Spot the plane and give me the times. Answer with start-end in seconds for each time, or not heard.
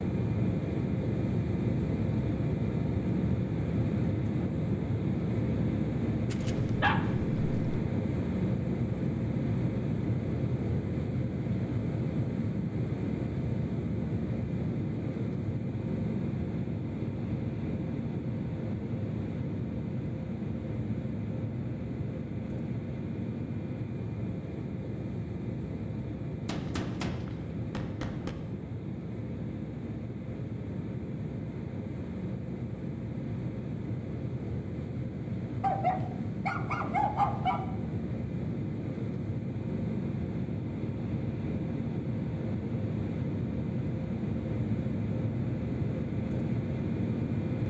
0.0-47.6.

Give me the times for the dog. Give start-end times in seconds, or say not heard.
6.3-7.8, 35.6-37.6.